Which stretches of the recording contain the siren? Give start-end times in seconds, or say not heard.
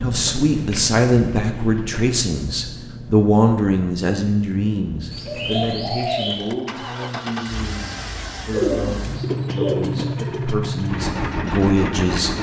not heard.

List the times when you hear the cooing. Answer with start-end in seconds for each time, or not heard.
0.1-2.2, 5.1-6.5, 8.5-10.5.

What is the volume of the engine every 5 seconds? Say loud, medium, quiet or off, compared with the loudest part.
medium, medium, loud.